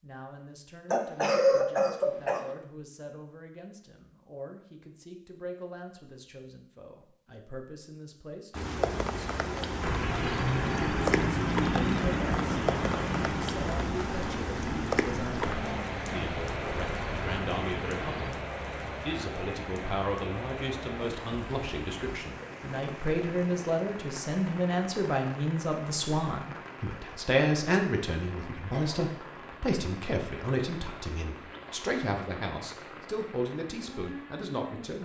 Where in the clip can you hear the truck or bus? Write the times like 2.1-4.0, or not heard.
9.8-18.4.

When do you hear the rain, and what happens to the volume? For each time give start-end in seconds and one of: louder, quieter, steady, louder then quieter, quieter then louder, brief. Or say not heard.
8.5-35.0 quieter.